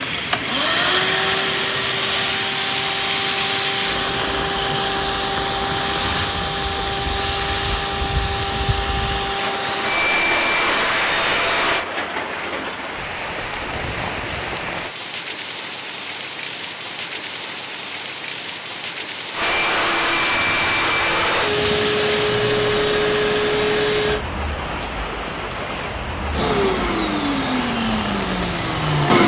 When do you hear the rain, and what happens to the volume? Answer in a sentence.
The rain can be heard from 0.0 to 29.2 s, at a steady volume.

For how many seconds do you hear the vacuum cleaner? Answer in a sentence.
You can hear the vacuum cleaner for 20 seconds altogether.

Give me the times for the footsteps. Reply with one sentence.
The footsteps can't be heard in this clip.